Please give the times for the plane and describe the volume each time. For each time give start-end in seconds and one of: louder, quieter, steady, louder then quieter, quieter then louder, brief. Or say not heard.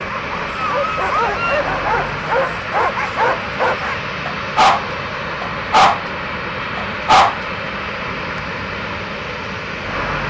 0.0-10.2 steady.